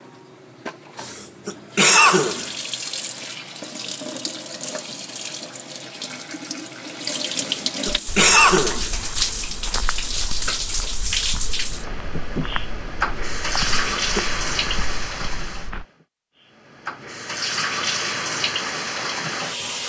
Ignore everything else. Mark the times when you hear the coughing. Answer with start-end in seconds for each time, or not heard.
1.0-2.5, 7.4-8.9, 13.7-14.2.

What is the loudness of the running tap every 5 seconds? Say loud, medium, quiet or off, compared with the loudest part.
medium, loud, loud, loud.